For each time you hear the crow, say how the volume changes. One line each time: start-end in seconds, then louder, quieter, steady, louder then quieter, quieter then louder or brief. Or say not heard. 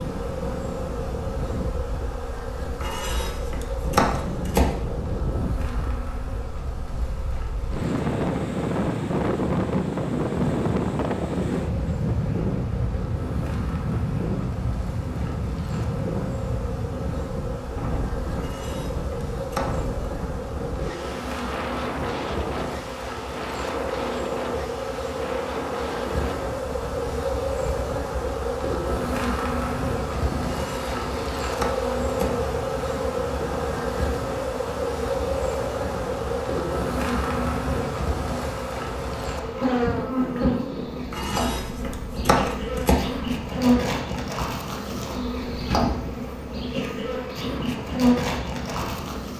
not heard.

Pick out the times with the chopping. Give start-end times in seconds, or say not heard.
2.8-4.8, 18.4-19.9, 30.5-32.4, 41.1-43.0.